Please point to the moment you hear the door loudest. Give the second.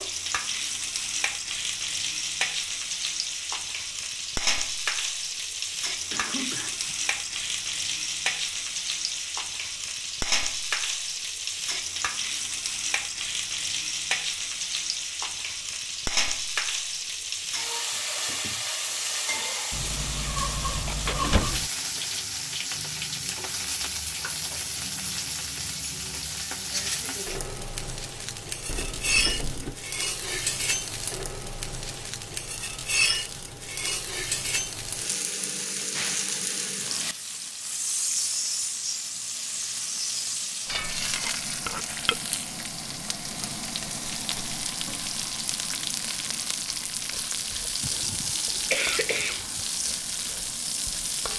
21 s.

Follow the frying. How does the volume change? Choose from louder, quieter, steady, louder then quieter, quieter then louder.
steady.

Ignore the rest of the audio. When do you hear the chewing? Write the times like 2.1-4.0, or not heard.
not heard.